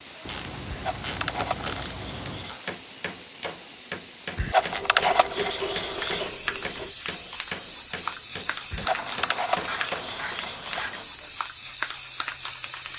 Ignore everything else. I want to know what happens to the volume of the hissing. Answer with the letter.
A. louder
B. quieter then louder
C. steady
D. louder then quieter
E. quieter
C.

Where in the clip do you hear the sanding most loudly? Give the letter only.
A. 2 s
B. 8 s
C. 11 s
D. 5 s
D.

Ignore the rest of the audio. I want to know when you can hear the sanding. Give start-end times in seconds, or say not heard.
0.7-2.8, 4.3-6.3, 8.7-11.1.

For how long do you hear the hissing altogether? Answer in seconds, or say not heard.
13 s.